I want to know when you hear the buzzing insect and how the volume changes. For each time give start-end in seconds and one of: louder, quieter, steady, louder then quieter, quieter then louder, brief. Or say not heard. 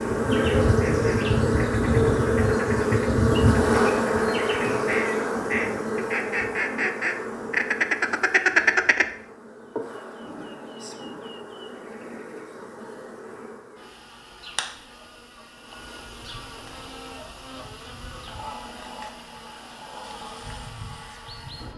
0.0-21.7 quieter.